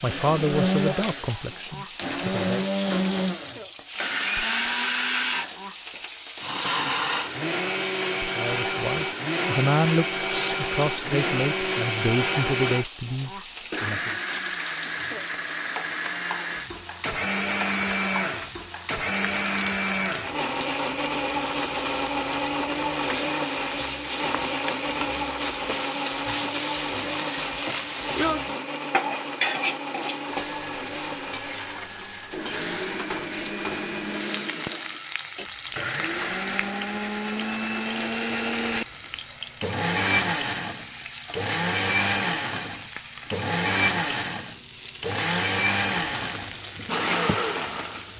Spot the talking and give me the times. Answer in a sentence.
You can hear the talking from 0.0 to 2.6 s and from 8.3 to 14.1 s.